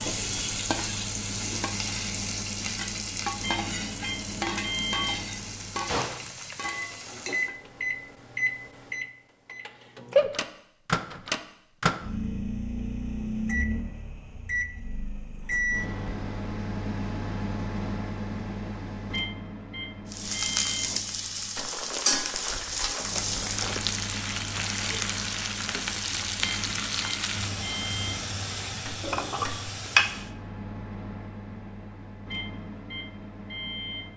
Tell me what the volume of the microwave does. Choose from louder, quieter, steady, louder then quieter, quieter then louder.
louder then quieter.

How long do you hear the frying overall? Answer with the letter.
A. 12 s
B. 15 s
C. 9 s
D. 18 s
D.